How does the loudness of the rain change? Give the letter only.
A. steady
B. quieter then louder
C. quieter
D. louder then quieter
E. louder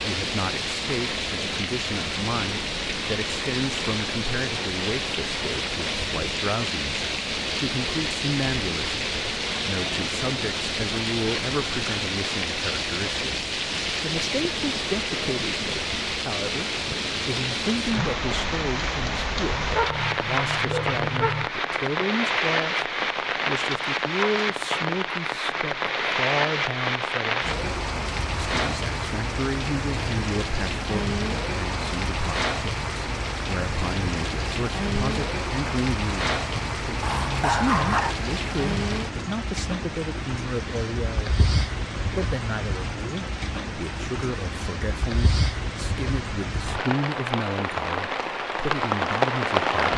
A.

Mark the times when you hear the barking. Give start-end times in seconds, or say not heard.
19.5-21.5, 37.0-38.1.